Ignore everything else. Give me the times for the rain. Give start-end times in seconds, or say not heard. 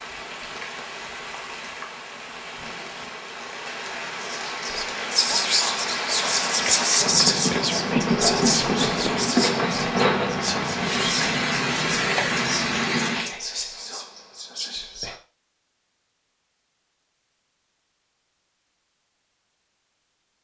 0.0-13.3.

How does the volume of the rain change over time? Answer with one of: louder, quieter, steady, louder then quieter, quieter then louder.
louder.